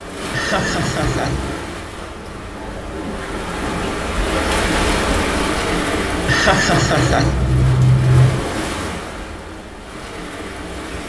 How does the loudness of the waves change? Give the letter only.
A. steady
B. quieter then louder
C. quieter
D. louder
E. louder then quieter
E.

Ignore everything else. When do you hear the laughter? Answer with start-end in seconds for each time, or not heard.
0.3-1.6, 6.2-8.4.